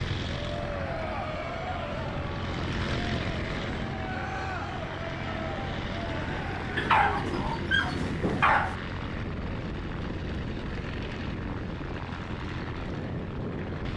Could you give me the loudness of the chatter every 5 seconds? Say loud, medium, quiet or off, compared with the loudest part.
loud, loud, off.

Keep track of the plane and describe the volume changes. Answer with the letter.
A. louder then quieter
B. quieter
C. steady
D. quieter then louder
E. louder
C.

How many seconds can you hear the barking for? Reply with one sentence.
You can hear the barking for 2 seconds altogether.